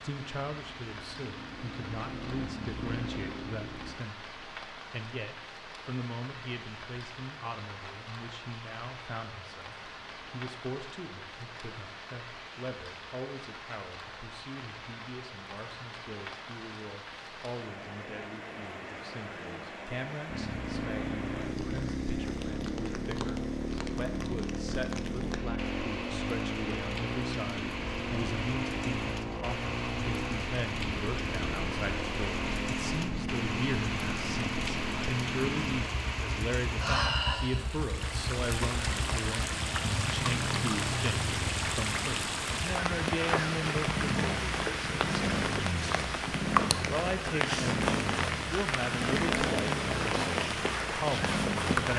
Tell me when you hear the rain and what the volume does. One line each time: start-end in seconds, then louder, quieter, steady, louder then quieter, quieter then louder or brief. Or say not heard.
0.0-51.9 louder.